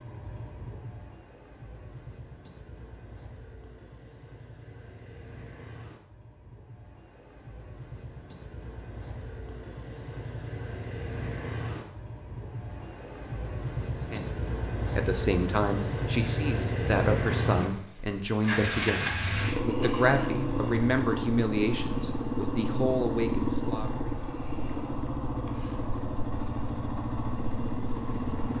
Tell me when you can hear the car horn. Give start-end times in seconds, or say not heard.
not heard.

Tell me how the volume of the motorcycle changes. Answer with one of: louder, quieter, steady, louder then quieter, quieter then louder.
louder.